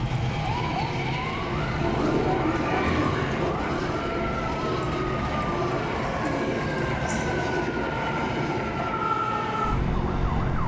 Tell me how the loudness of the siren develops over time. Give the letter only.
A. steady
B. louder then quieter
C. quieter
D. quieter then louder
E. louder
E.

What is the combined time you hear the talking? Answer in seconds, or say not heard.
not heard.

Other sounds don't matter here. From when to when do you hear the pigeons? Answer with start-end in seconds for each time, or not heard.
1.8-3.5, 5.8-7.7.